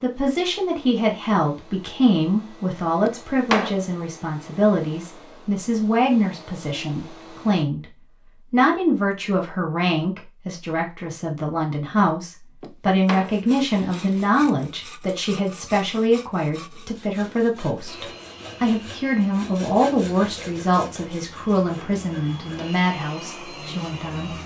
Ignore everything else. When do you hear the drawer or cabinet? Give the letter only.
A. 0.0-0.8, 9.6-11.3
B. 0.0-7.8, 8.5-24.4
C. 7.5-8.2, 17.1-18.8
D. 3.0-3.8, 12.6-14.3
D.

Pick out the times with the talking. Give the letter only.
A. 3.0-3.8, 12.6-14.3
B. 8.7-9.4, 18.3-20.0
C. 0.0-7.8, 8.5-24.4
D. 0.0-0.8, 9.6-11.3
C.